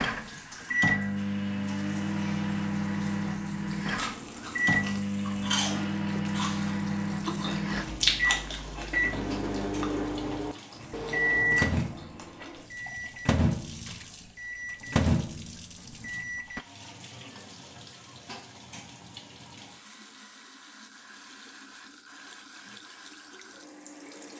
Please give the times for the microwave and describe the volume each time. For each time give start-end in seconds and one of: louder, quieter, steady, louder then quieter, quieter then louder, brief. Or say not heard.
0.0-16.6 steady.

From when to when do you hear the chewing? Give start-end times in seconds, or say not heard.
4.0-12.6.